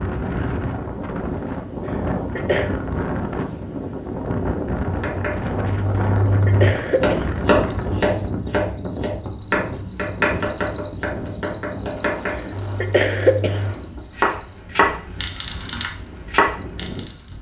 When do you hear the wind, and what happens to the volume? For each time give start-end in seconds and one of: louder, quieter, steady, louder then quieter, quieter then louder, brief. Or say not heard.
0.0-17.3 quieter.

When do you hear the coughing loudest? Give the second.
13 s.